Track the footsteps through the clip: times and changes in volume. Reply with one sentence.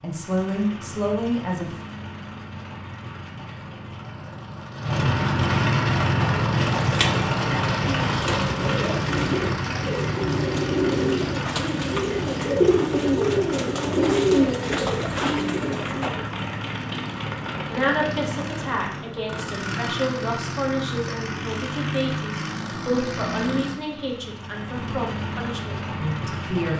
The footsteps can't be heard in this clip.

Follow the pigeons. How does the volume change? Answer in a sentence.
The volume of the pigeons goes up.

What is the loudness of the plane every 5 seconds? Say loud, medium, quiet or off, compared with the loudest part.
quiet, loud, medium, medium, medium, medium.